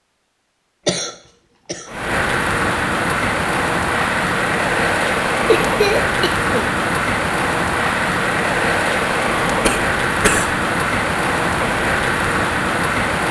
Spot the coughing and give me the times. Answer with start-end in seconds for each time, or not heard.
0.8-1.9, 5.5-6.7, 9.6-10.5.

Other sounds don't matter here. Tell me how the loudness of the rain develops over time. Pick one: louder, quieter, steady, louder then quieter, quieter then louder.
steady.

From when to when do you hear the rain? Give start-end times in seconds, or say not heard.
1.9-13.2.